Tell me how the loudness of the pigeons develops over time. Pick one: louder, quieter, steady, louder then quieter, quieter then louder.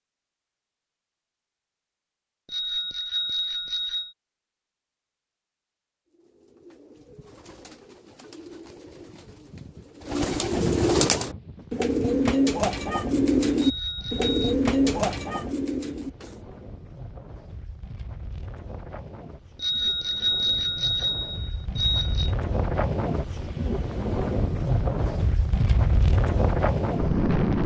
louder.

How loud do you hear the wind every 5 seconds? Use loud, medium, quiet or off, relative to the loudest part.
off, off, quiet, quiet, medium, loud.